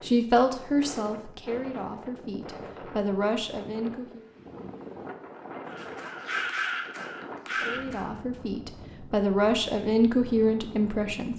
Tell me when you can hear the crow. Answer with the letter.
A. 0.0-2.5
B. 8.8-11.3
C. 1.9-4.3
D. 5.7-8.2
D.